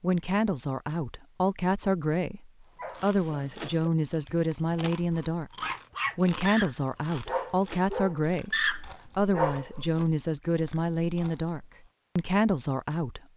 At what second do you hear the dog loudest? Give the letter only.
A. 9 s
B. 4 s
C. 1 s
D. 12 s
A.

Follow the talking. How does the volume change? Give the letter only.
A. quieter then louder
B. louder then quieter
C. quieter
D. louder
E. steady
E.